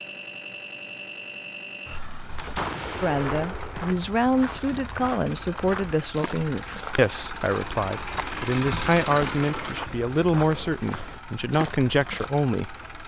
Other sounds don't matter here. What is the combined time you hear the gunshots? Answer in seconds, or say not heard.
2 s.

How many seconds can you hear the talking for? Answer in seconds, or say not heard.
10 s.